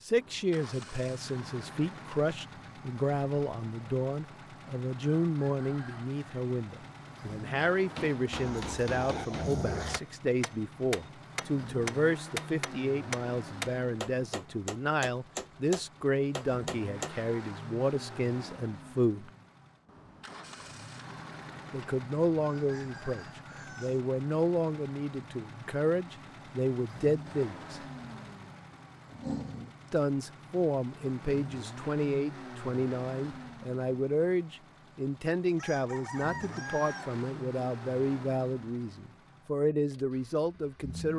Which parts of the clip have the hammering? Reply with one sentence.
You can hear the hammering from 8.0 to 17.1 s.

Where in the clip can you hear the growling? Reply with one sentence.
The growling can be heard from 8.3 to 10.0 s and from 29.1 to 29.8 s.